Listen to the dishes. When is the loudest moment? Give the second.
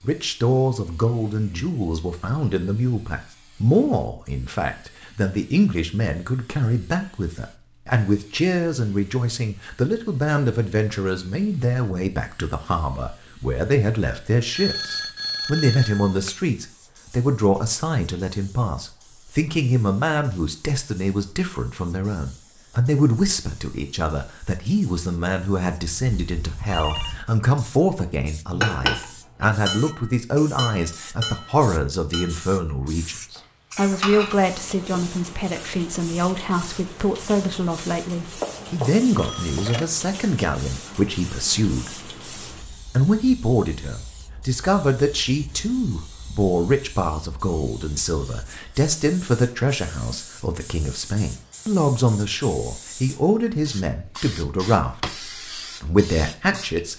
29 s.